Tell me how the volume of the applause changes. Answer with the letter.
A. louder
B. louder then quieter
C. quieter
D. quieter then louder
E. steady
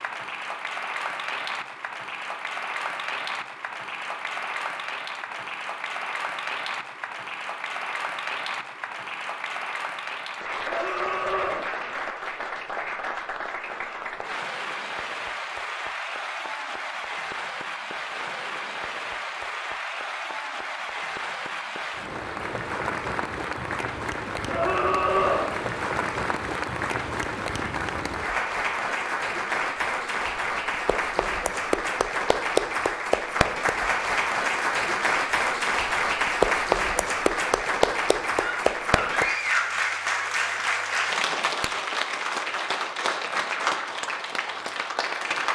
A.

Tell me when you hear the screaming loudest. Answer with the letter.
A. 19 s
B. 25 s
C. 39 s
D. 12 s
B.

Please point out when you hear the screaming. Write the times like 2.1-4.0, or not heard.
10.6-11.7, 24.4-25.5, 38.4-39.8.